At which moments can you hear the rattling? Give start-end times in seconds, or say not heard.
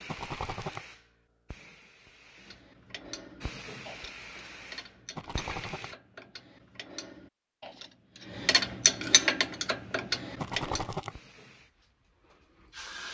0.1-0.8, 5.2-5.9, 10.3-11.2.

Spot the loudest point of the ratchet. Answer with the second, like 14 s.
9 s.